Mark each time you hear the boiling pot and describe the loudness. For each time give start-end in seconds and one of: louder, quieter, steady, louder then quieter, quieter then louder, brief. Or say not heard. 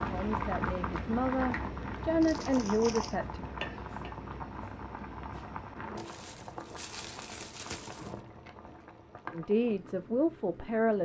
0.0-11.0 quieter.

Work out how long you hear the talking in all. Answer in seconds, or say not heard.
5 s.